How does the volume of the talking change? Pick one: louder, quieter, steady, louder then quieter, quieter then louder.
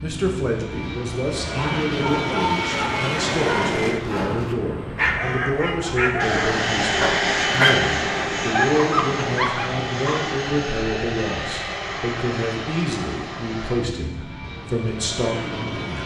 steady.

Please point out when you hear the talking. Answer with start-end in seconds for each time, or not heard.
0.0-16.0.